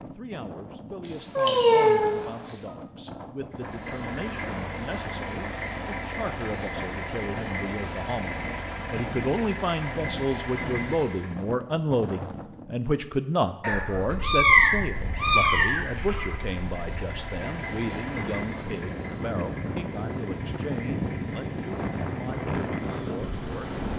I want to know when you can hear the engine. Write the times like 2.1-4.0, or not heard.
3.5-11.4, 14.8-23.9.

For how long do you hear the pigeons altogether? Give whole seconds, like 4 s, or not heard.
not heard.